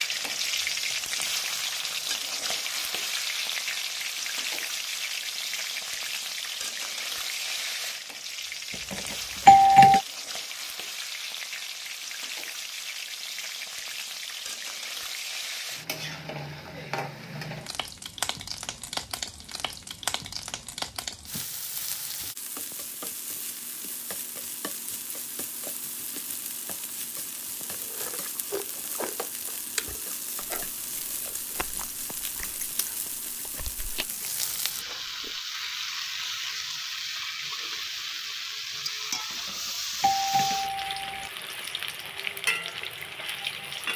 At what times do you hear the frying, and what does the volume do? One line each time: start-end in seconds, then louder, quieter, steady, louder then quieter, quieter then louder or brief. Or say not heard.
0.0-43.9 quieter then louder.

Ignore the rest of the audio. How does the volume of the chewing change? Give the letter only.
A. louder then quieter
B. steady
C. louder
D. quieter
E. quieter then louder
D.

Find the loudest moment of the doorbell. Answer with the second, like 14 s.
10 s.